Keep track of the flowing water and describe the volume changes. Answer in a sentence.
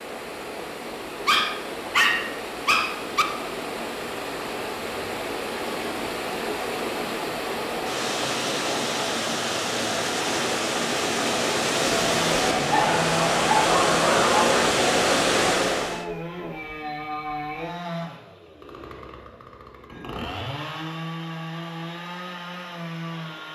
The loudness of the flowing water goes up.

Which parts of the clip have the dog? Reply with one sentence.
The dog can be heard from 1.2 to 3.2 s and from 12.7 to 14.7 s.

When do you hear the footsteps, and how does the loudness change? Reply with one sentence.
You can't hear the footsteps here.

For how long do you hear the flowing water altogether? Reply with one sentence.
You can hear the flowing water for 16 seconds altogether.